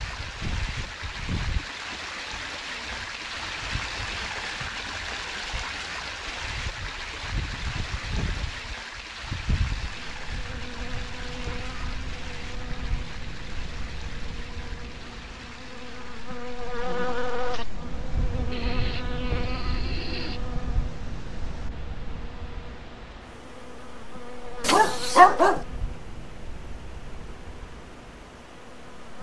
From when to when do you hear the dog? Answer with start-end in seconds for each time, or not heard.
24.6-25.6.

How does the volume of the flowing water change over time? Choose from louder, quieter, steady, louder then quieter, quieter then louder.
quieter.